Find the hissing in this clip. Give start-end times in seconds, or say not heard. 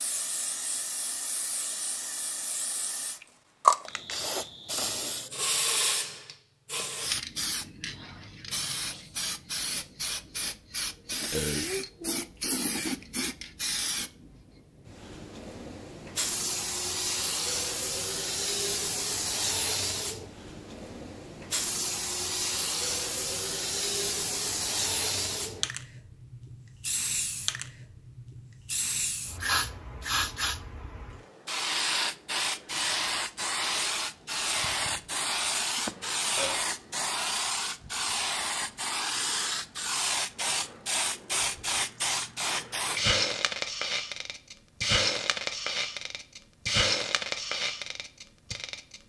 0.0-49.0.